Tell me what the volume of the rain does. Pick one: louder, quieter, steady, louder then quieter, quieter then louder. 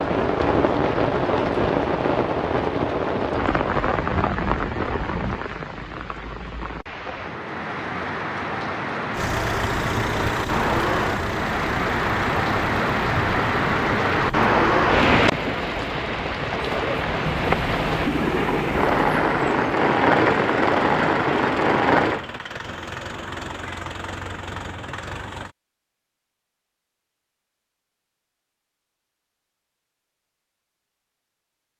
quieter then louder.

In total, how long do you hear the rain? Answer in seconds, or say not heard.
22 s.